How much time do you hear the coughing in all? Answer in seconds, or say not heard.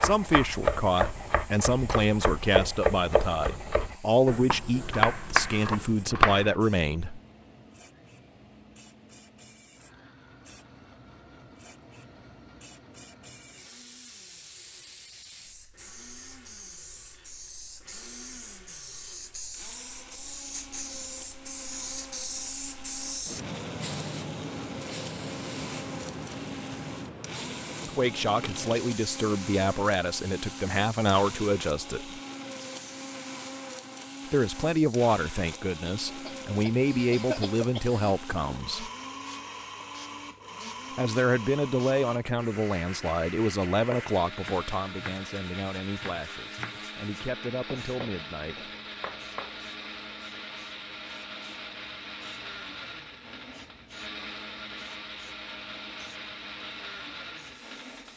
2 s.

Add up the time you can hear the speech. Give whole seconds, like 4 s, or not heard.
24 s.